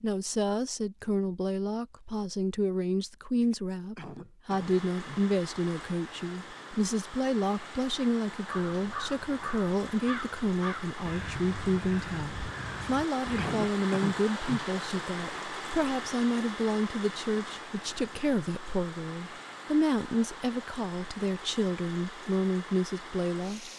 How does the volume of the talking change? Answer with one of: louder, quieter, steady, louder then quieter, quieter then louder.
steady.